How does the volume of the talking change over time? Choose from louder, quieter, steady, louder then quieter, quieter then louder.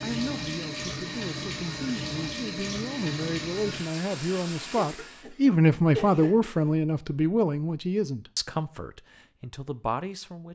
louder then quieter.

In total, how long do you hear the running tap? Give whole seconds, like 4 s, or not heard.
5 s.